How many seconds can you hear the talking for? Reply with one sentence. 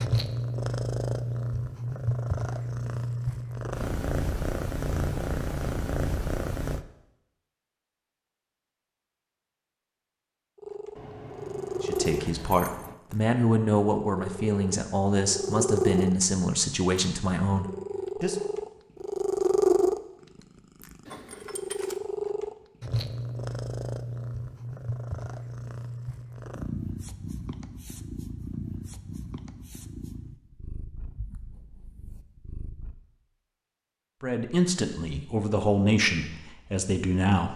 You can hear the talking for 10 seconds altogether.